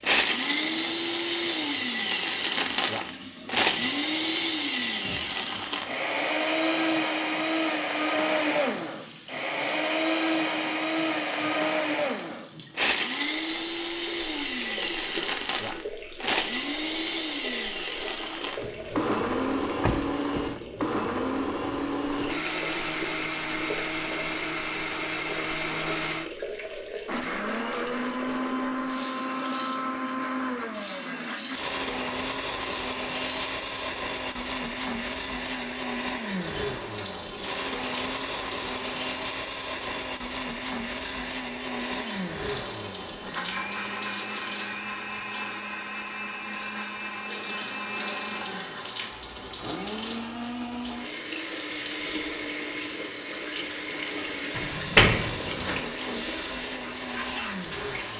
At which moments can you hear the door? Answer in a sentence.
You can hear the door from 19.8 to 20.6 s and from 54.5 to 55.8 s.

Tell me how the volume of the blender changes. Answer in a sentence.
The volume of the blender goes down.